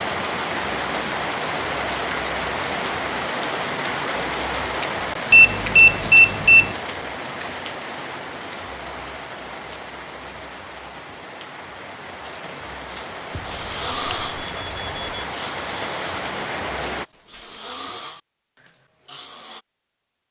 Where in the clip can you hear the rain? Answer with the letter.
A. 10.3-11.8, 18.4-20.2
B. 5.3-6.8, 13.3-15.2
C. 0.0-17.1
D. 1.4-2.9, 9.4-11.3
C.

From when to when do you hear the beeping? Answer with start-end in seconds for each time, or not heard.
5.3-6.8, 13.3-15.2.